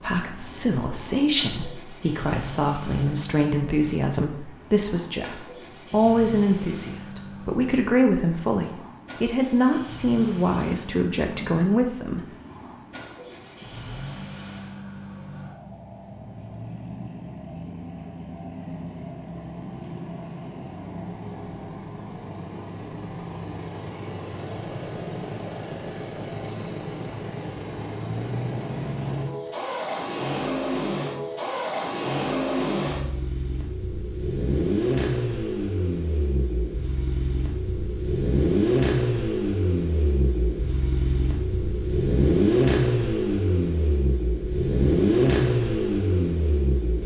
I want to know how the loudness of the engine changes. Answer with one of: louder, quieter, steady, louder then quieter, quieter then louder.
louder.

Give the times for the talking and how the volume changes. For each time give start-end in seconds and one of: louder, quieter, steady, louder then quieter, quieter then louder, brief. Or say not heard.
0.0-12.2 steady.